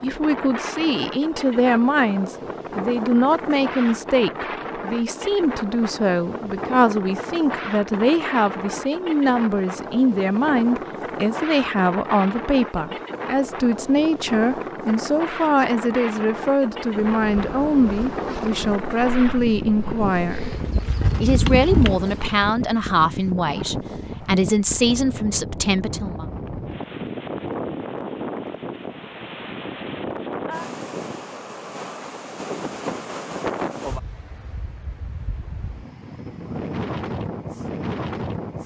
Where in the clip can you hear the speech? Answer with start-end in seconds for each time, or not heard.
0.0-20.5, 21.2-26.2.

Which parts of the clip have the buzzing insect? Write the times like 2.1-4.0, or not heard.
16.9-22.4.